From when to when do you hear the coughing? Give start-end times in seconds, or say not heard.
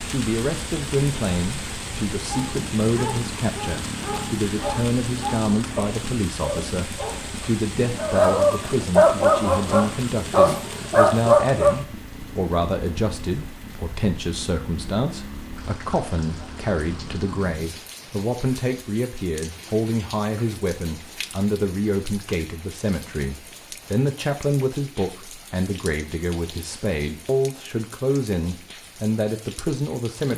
not heard.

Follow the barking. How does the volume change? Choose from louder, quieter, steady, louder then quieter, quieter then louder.
louder.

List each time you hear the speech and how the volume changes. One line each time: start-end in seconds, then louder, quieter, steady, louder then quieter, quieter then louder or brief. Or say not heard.
0.1-30.3 steady.